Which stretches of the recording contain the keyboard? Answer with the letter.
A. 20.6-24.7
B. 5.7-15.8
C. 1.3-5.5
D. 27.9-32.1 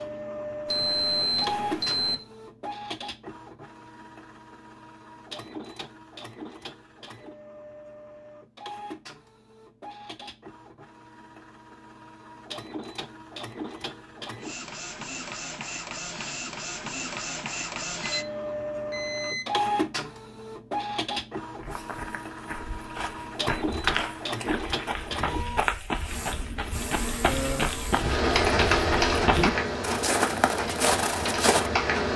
D.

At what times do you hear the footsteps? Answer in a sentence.
The footsteps can be heard from 21.6 to 31.7 s.